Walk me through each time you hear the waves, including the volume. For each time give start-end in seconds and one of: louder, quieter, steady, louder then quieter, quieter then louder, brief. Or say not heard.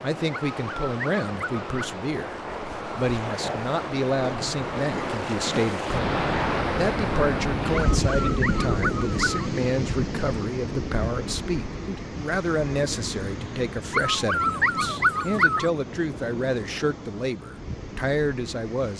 0.0-18.9 louder then quieter.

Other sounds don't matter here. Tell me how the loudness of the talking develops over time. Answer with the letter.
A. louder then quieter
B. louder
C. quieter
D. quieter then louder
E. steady
E.